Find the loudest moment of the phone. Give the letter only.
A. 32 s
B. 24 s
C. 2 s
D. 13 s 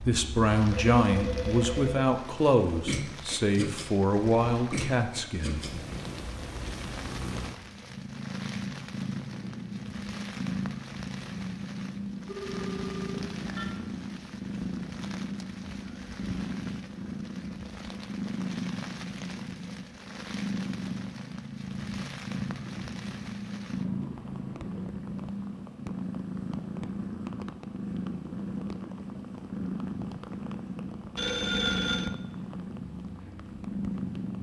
A.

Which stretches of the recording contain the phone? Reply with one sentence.
You can hear the phone from 0.7 to 2.1 s, from 12.2 to 13.7 s and from 31.1 to 32.1 s.